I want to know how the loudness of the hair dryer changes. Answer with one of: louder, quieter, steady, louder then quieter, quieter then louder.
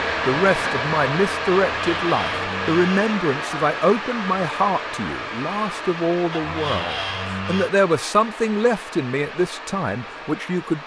quieter.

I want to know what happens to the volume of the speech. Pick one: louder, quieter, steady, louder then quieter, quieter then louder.
steady.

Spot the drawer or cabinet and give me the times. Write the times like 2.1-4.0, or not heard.
1.6-3.1, 6.3-7.7.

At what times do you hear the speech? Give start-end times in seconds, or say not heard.
0.2-10.8.